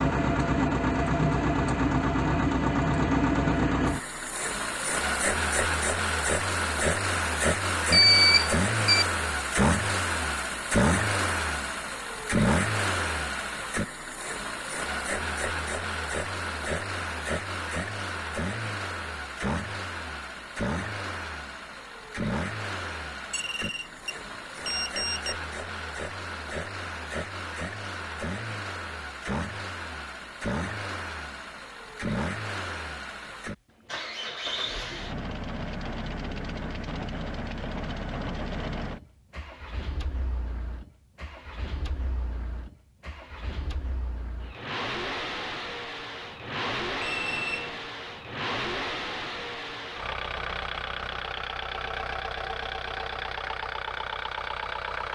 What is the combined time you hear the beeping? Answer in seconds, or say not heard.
4 s.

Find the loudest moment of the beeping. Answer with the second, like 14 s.
8 s.